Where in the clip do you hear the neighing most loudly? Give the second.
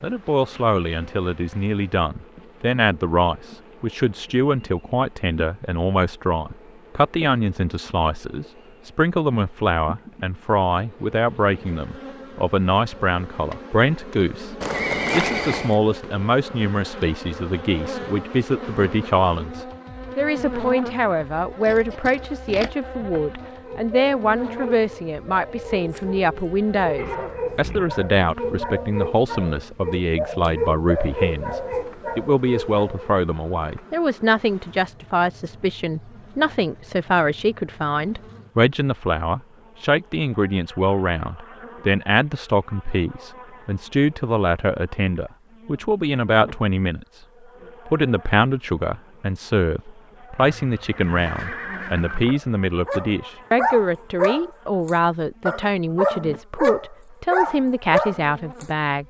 15 s.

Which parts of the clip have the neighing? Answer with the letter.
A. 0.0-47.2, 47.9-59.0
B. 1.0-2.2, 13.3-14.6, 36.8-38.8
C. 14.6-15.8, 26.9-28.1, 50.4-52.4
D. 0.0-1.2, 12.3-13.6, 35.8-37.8
C.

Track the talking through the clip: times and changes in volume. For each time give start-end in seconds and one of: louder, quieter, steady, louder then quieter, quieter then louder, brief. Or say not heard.
0.0-47.2 steady
47.9-59.0 steady.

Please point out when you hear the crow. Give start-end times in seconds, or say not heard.
not heard.